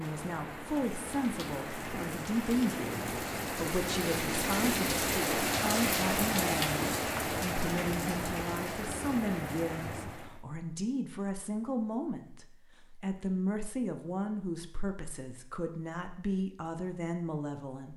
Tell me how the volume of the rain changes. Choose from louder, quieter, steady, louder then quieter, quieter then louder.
louder then quieter.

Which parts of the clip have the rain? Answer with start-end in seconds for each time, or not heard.
0.0-10.4.